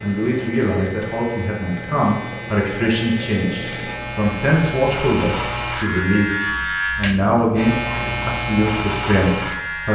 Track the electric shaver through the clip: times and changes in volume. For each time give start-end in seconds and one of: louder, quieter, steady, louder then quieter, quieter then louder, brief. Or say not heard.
0.0-9.9 louder.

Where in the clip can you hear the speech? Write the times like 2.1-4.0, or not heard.
0.0-6.3, 7.0-9.9.